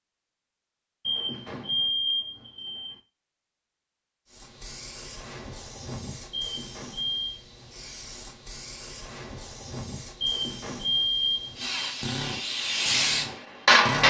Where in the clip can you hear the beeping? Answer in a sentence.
You can hear the beeping from 1.1 to 3.0 s, from 6.3 to 7.4 s and from 10.2 to 11.7 s.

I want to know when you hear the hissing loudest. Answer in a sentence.
The volume of the hissing peaks at 14 seconds.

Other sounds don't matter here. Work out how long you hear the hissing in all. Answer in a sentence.
The hissing can be heard for 10 seconds in total.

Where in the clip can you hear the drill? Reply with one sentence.
You can hear the drill from 11.6 to 14.0 s.